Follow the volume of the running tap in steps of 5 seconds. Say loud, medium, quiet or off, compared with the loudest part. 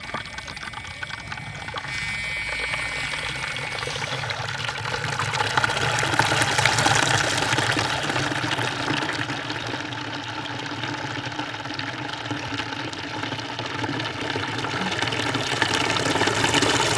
medium, loud, medium, loud.